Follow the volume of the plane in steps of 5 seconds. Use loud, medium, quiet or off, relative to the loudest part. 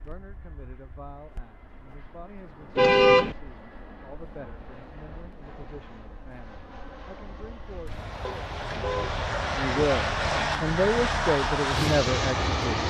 quiet, medium, loud.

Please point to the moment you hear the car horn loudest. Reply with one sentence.
The loudest moment of the car horn is at 3 seconds.